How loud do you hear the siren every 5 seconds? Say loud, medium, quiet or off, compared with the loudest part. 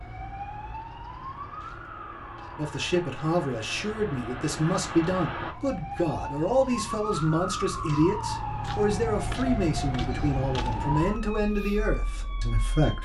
medium, loud, loud.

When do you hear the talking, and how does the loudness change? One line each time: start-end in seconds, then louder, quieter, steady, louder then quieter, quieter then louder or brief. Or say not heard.
2.5-12.9 steady.